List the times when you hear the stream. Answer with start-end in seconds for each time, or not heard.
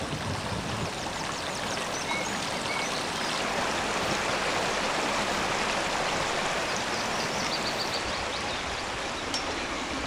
0.0-10.0.